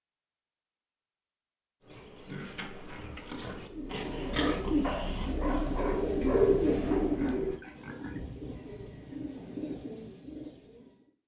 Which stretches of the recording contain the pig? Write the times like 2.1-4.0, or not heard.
1.8-8.2.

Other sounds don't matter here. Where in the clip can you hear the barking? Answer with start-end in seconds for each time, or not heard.
4.8-6.7.